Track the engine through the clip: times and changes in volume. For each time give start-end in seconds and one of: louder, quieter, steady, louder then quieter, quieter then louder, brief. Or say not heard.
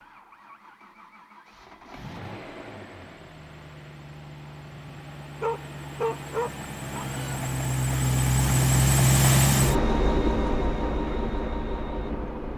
0.0-12.5 louder then quieter.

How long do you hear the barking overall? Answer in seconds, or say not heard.
2 s.